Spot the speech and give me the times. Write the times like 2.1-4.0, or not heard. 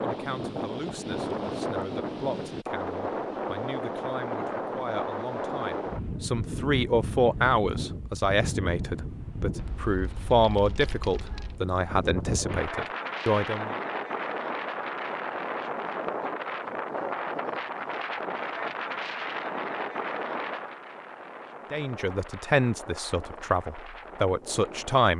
0.0-13.8, 21.7-25.1.